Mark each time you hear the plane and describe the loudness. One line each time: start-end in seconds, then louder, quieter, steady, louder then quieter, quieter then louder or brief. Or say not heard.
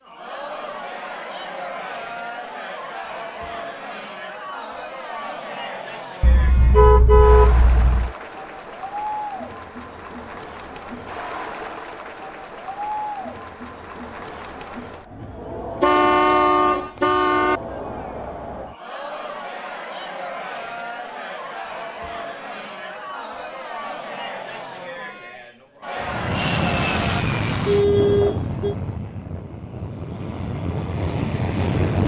26.0-32.0 quieter then louder.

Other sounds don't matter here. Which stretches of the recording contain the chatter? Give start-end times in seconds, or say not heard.
0.0-27.2.